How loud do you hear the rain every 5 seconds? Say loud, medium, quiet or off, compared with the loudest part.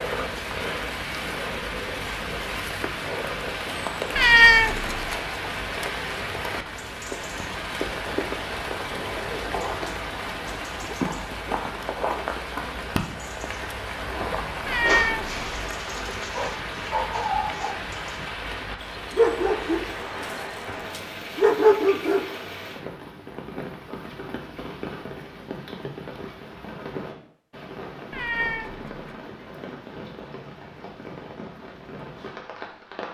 loud, loud, loud, loud, medium, medium, medium.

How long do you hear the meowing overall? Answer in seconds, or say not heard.
3 s.